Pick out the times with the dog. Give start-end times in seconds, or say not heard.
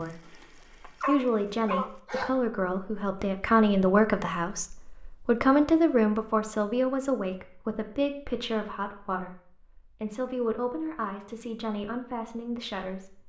0.0-2.4.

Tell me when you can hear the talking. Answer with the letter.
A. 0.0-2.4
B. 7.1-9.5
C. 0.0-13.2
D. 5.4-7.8
C.